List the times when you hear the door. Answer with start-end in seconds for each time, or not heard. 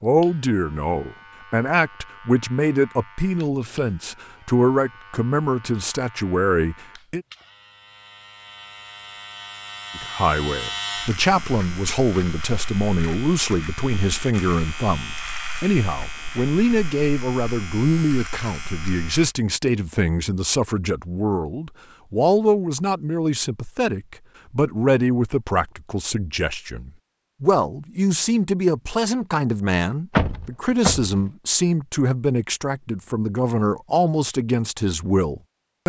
30.1-31.1.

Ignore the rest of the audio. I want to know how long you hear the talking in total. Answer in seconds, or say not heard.
33 s.